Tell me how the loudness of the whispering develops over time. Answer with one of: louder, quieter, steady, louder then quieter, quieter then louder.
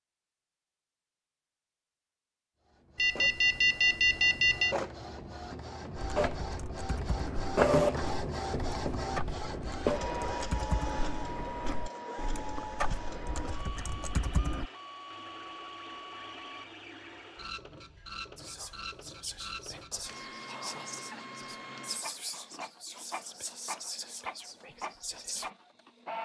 steady.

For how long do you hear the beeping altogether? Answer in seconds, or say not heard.
2 s.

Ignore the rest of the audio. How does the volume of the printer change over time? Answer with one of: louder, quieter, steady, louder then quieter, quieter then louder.
quieter.